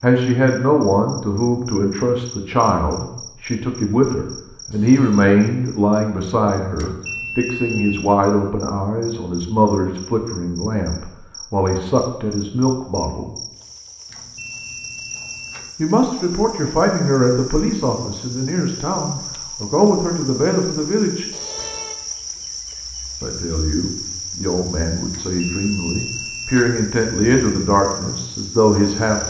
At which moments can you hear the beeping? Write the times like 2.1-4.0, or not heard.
6.8-8.1, 14.1-15.7, 25.1-26.8.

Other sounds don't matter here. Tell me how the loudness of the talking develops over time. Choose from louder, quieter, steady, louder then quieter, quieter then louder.
steady.